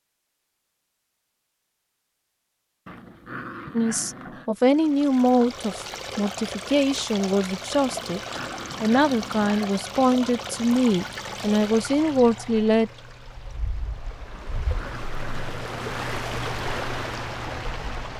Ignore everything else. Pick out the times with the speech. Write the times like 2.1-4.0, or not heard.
3.8-12.9.